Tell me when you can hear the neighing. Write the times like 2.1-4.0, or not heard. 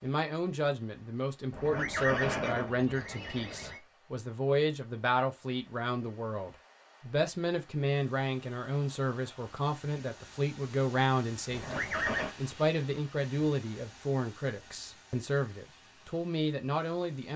1.5-3.8, 11.5-12.3.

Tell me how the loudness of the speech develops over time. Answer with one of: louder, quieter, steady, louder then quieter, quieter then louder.
steady.